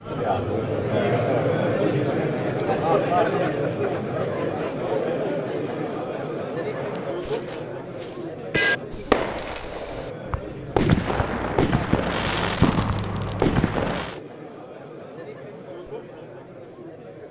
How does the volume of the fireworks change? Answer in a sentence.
The volume of the fireworks goes up.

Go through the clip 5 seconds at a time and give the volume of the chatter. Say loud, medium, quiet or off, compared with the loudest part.
loud, medium, quiet, quiet.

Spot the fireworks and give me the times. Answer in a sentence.
You can hear the fireworks from 6.6 to 14.2 s.